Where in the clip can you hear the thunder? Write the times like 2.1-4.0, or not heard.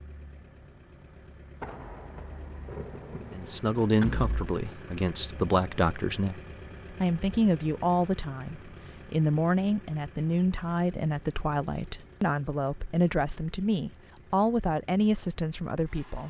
1.6-3.6.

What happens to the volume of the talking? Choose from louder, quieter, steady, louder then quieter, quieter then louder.
steady.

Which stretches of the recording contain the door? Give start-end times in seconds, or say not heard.
4.0-4.5.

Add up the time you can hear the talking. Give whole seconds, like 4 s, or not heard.
12 s.